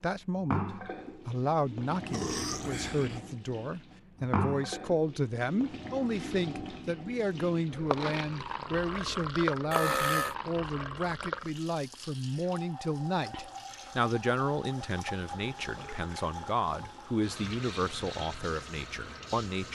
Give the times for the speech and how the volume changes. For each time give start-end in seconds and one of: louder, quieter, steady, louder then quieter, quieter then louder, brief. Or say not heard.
0.0-19.7 steady.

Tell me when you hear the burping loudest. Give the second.
10 s.